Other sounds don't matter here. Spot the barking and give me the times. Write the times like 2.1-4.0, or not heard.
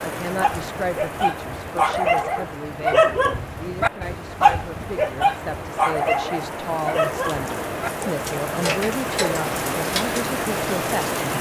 0.2-10.2.